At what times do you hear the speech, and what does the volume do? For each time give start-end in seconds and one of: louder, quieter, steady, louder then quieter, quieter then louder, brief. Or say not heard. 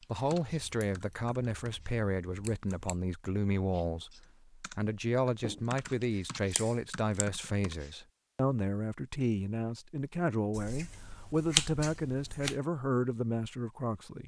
0.1-14.2 steady.